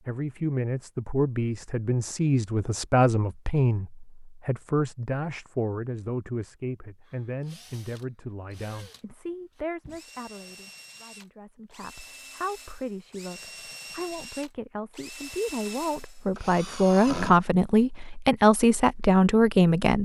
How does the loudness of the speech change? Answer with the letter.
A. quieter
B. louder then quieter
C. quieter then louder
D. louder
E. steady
C.